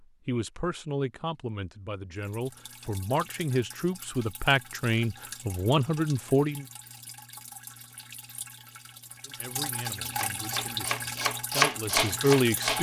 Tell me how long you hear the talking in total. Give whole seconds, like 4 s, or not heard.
10 s.